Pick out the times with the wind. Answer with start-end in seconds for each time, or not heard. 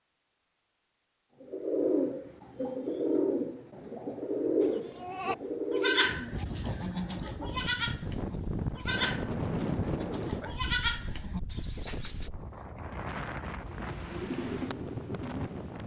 6.1-15.8.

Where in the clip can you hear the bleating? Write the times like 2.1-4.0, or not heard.
4.6-12.2.